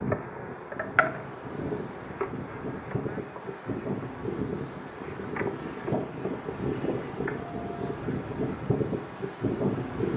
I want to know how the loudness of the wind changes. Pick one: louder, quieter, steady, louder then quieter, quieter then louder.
louder.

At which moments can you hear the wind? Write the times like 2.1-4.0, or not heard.
0.0-10.1.